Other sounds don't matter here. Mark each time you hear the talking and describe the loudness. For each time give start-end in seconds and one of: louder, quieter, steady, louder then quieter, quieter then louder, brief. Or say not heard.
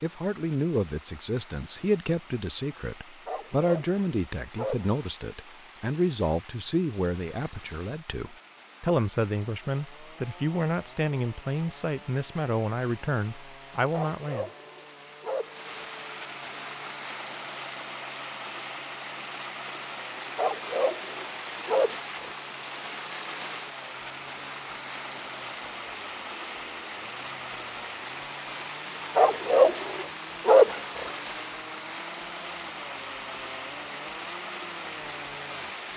0.0-14.5 steady.